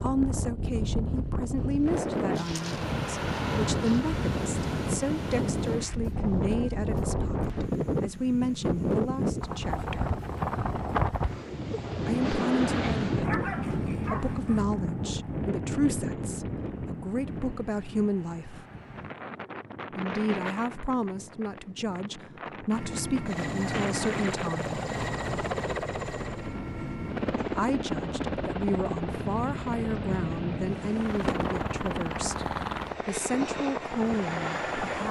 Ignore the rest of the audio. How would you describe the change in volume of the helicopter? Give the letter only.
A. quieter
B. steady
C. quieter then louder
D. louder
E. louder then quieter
B.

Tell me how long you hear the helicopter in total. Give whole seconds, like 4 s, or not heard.
12 s.